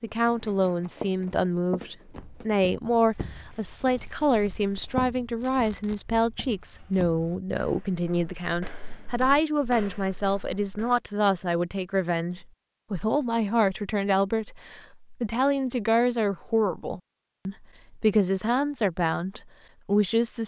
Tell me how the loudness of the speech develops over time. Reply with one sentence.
The volume of the speech stays about the same.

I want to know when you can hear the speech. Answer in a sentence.
You can hear the speech from 0.0 to 20.4 s.